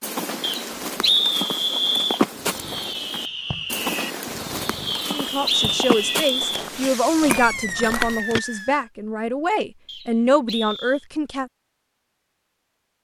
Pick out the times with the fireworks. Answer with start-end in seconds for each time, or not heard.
2.3-8.9.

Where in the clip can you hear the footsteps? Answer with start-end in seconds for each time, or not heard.
0.0-8.4.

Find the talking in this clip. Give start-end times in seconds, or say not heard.
5.1-11.5.